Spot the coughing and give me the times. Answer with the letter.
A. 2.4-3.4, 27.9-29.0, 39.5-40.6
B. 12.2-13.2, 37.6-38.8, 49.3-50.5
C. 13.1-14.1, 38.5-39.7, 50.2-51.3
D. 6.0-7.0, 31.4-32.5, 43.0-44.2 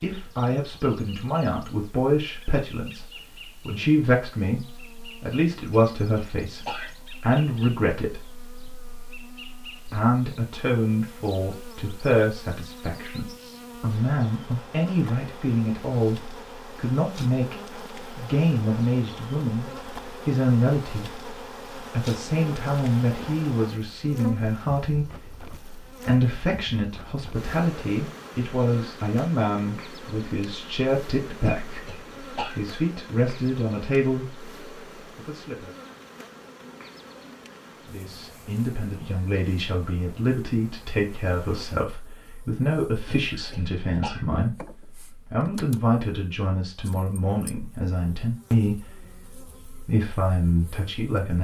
D.